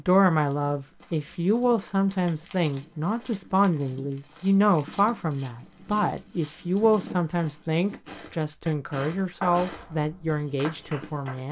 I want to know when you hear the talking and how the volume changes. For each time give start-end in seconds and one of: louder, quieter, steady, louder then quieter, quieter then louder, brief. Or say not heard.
0.0-11.4 steady.